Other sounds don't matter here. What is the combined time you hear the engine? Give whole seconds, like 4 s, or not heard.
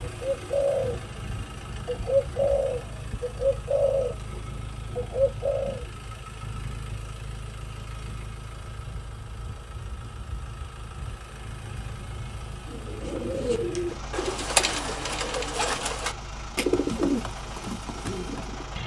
19 s.